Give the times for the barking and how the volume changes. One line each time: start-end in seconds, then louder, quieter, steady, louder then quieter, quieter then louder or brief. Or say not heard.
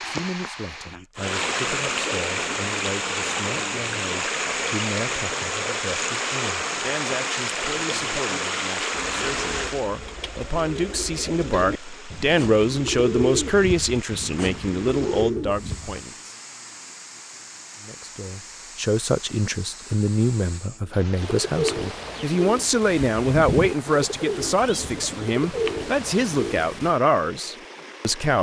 not heard.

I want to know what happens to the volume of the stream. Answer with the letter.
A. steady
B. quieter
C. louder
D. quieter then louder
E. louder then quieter
B.